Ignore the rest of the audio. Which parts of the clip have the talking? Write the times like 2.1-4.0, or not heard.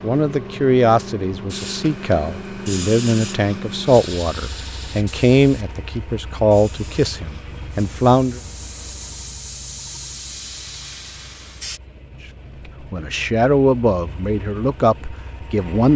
0.0-8.4, 12.9-15.9.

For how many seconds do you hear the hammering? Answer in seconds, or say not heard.
not heard.